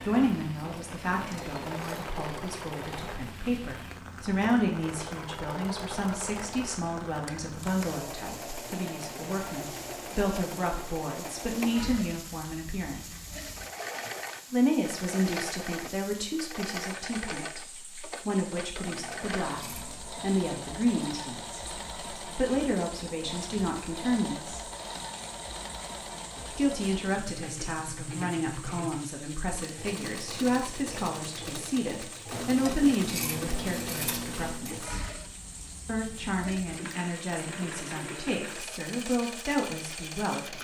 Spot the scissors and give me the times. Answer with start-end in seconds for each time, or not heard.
1.2-2.0, 18.8-20.0, 32.3-34.8.